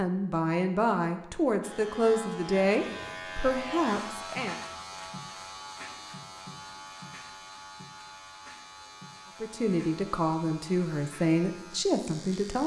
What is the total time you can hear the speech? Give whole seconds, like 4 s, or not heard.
8 s.